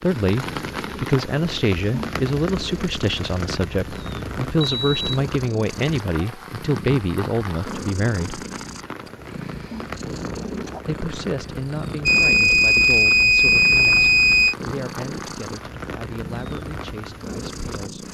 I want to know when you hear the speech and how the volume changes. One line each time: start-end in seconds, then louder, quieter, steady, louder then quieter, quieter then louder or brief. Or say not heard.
0.0-8.4 steady
10.8-18.0 quieter.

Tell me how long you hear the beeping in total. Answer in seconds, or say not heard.
3 s.